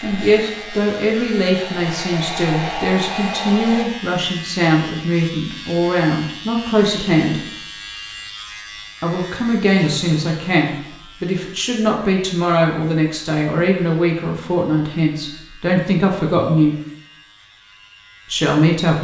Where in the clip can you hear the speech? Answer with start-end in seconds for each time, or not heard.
0.0-7.5, 9.0-16.8, 18.3-19.0.